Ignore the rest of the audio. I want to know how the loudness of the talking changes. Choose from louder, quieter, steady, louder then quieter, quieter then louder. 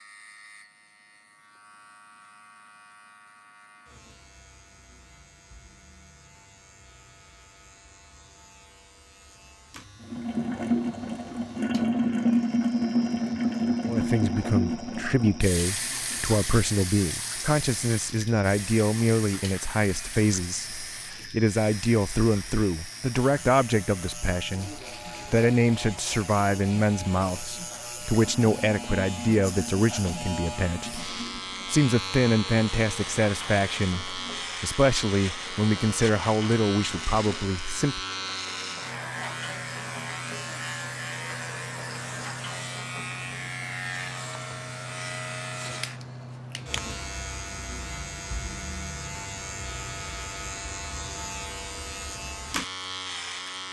steady.